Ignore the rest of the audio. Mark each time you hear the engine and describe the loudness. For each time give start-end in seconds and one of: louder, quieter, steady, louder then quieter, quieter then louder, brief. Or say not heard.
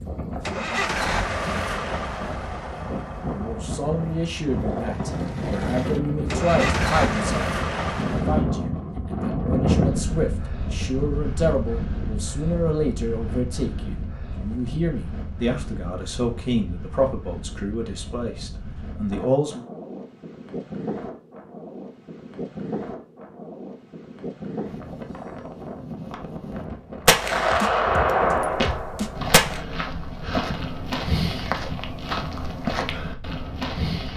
0.5-8.4 quieter then louder.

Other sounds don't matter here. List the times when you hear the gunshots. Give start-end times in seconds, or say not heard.
27.1-29.6.